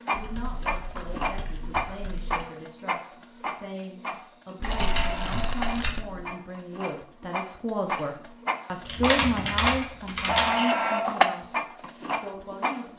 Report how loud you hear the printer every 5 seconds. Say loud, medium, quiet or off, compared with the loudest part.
medium, medium, loud.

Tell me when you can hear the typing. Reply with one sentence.
The typing can be heard from 0.1 to 2.5 s, from 4.5 to 6.2 s and from 8.8 to 10.6 s.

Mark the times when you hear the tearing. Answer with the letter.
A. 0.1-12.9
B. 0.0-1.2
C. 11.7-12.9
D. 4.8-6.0
D.